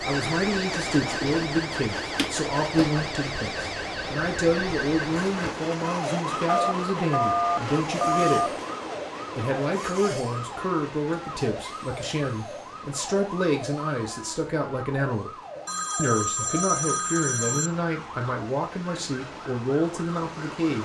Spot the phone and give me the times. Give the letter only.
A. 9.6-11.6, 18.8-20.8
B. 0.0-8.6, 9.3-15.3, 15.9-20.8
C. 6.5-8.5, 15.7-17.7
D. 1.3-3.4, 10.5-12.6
C.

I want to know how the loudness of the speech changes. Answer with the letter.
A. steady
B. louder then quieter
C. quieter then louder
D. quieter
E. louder
A.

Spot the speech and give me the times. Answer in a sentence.
The speech can be heard from 0.0 to 8.6 s, from 9.3 to 15.3 s and from 15.9 to 20.8 s.